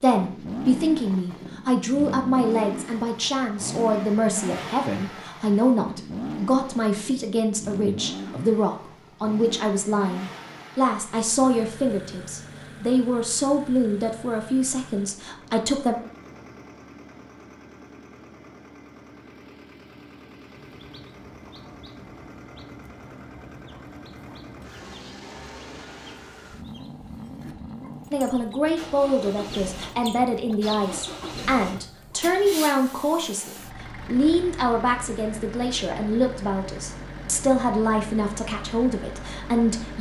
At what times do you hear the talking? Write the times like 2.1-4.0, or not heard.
0.0-15.9, 28.1-39.9.